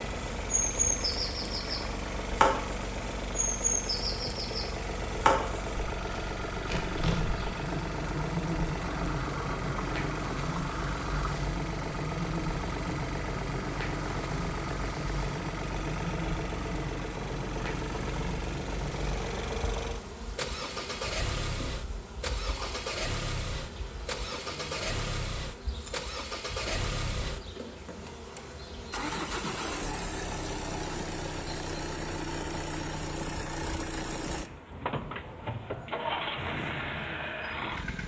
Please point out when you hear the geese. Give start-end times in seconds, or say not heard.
not heard.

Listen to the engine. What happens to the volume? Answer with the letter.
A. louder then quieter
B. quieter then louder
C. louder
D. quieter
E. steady
E.